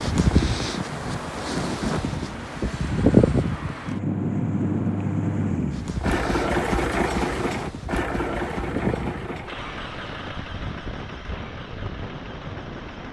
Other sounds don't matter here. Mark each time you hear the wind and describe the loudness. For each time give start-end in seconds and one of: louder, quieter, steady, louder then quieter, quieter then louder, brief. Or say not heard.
0.0-13.0 louder then quieter.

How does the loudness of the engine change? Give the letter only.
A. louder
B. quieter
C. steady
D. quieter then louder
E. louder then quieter
E.